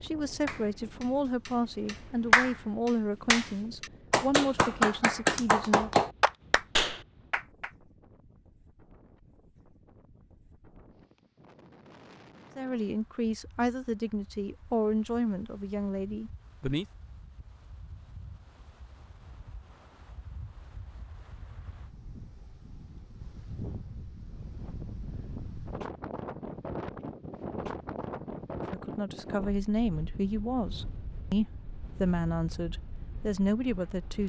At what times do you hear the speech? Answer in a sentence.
The speech can be heard from 0.0 to 5.9 s, from 12.6 to 16.9 s and from 28.7 to 34.2 s.